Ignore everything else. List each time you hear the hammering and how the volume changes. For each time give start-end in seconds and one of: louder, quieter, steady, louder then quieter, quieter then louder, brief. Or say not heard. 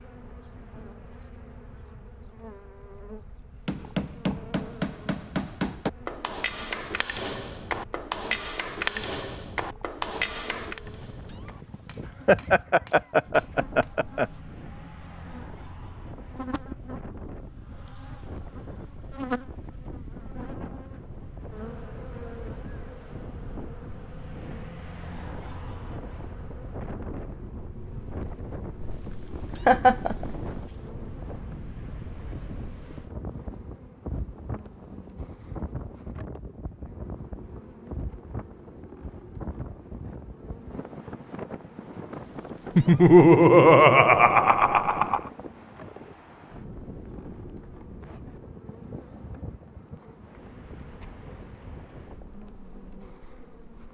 3.6-13.9 quieter.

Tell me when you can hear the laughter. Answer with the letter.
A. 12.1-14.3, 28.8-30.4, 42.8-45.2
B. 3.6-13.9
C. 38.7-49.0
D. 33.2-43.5
A.